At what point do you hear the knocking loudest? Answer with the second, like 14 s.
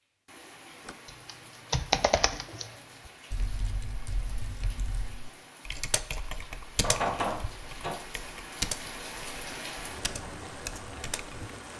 7 s.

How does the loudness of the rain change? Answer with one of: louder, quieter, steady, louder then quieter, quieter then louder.
louder.